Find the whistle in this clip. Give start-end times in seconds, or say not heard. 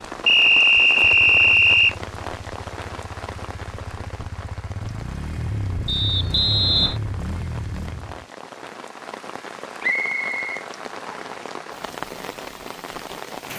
0.2-1.9, 5.8-7.0, 9.8-11.3.